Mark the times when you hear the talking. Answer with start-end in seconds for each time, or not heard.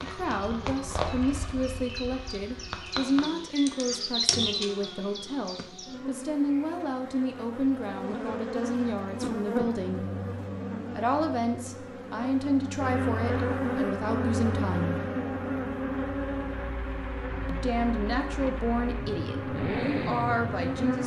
0.0-10.1, 10.9-15.0, 17.4-21.0.